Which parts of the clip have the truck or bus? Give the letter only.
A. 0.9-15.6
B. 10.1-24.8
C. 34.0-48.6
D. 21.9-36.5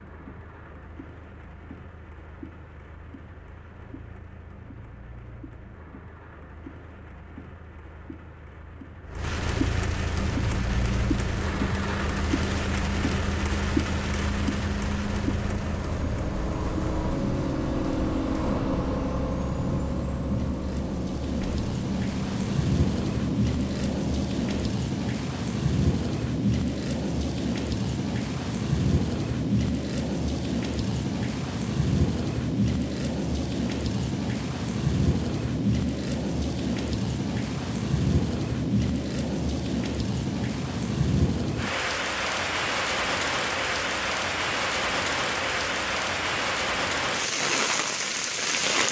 B.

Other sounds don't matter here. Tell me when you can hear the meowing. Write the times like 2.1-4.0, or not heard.
not heard.